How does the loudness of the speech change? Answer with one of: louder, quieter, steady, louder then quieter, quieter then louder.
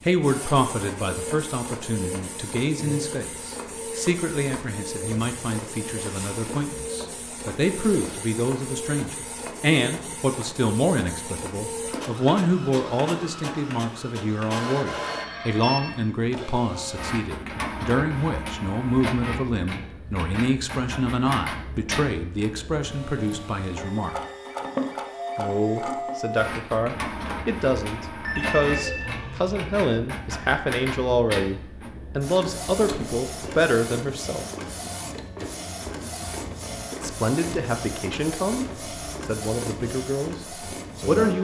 steady.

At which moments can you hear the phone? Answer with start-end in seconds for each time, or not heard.
15.0-16.1, 28.2-29.6.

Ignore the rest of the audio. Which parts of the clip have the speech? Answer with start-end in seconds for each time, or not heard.
0.1-24.1, 25.4-34.5, 36.9-41.3.